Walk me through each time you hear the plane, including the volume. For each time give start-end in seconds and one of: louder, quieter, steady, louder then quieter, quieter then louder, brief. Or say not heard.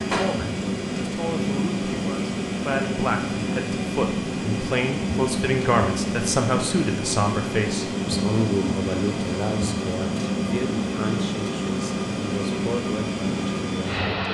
0.0-14.2 steady.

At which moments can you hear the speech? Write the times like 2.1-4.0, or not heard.
0.1-14.2.